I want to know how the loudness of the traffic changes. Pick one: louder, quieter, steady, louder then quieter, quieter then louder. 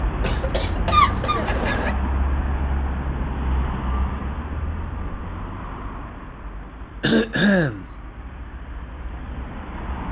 quieter.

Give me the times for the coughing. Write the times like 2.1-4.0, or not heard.
0.2-1.9, 7.0-7.8.